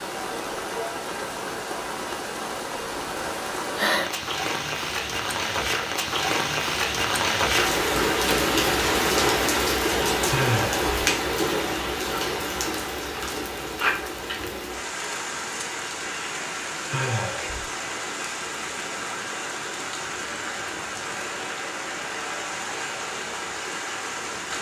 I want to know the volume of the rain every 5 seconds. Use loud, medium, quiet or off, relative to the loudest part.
medium, loud, loud, medium, medium.